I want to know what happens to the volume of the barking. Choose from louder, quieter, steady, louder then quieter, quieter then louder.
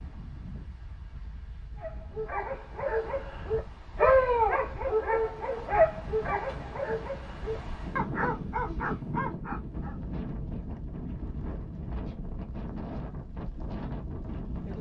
louder then quieter.